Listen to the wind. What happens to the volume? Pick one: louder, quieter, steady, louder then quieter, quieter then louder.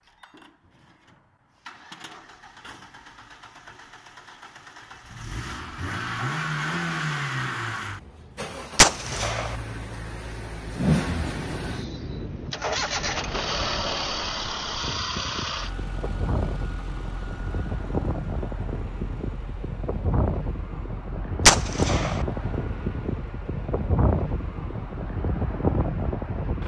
louder.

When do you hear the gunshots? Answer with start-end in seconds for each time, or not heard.
8.8-9.6, 21.4-22.2.